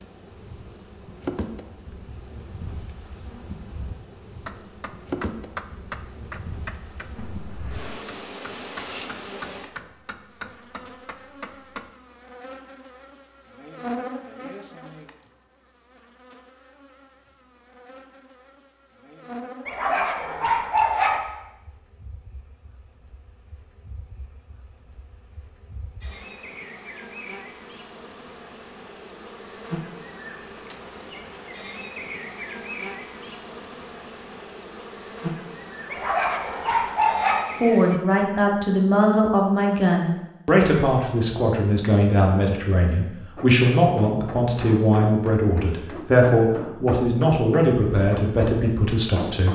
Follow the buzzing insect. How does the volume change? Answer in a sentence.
The loudness of the buzzing insect goes down, then up.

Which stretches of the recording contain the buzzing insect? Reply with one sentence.
The buzzing insect can be heard from 0.0 to 38.0 s.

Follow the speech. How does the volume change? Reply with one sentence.
The loudness of the speech stays about the same.